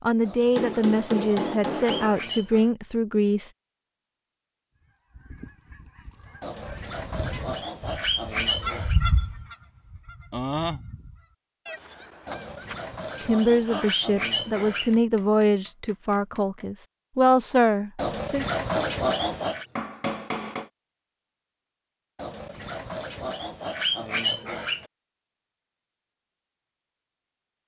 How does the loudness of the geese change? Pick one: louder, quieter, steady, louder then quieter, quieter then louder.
louder then quieter.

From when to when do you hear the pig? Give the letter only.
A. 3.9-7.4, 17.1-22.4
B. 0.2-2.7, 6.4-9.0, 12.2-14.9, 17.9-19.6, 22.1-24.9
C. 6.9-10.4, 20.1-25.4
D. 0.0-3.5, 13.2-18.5
B.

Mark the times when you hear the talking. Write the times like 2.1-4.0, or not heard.
0.0-3.5, 13.2-18.5.